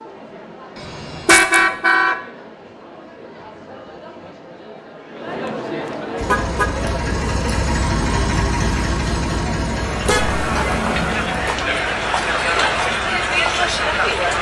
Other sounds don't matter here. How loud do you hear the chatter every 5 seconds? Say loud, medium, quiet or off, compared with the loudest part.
quiet, medium, loud.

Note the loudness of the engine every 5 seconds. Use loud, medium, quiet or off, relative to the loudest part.
off, loud, medium.